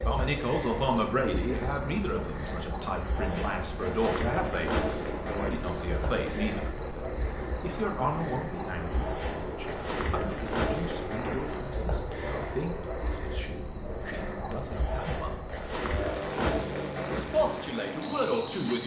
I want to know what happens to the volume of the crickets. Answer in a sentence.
The loudness of the crickets stays about the same.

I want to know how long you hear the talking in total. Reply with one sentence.
You can hear the talking for 17 seconds altogether.